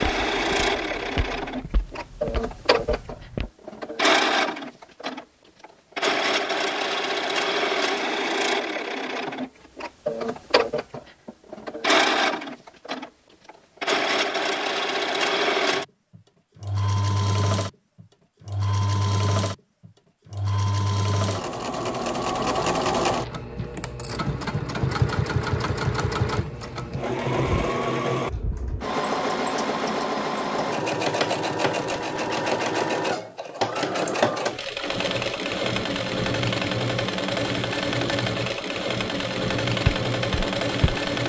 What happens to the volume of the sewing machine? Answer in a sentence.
The volume of the sewing machine stays about the same.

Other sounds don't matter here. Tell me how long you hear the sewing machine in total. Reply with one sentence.
You can hear the sewing machine for 41 seconds altogether.